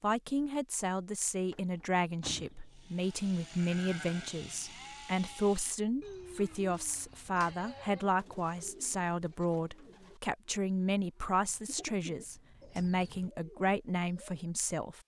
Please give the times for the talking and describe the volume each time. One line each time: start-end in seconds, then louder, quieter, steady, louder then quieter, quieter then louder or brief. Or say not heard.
0.0-15.0 steady.